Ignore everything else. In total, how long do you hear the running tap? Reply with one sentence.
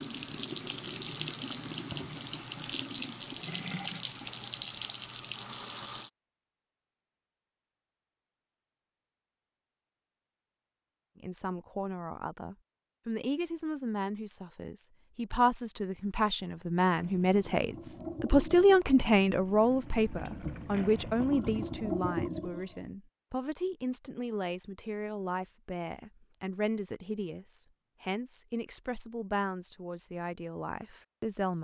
The running tap can be heard for 12 seconds in total.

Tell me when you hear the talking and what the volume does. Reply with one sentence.
The talking can be heard from 11.2 to 31.5 s, getting louder then quieter.